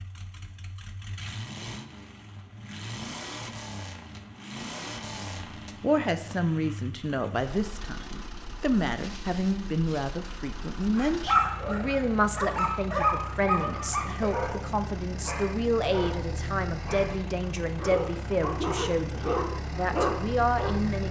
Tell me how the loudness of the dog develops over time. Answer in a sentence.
The volume of the dog goes down, then up.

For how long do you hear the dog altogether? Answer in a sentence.
The dog can be heard for 10 seconds in total.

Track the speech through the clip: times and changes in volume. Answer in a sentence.
The speech can be heard from 5.0 to 21.0 s, at a steady volume.